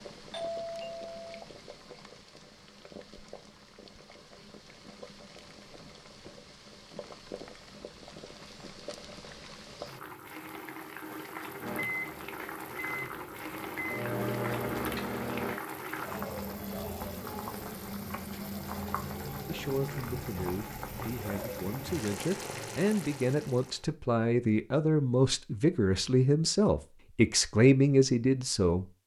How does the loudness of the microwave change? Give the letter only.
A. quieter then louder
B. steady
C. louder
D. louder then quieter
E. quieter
C.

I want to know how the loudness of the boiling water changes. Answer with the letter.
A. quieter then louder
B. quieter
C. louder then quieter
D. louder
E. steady
D.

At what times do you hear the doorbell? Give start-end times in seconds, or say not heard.
0.3-1.4.